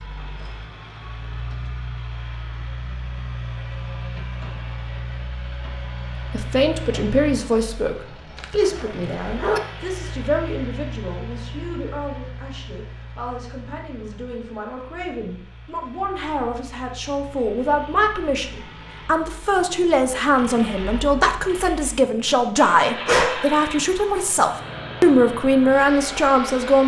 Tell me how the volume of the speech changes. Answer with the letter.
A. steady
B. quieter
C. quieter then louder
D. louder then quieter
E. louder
C.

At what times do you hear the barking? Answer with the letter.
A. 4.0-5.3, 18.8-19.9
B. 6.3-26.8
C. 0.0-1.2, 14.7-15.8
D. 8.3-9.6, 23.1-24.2
D.